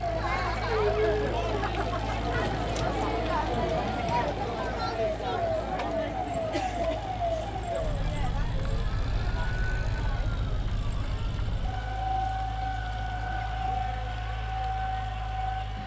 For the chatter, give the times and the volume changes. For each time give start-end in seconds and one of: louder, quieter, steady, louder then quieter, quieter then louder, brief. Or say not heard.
0.0-15.8 quieter.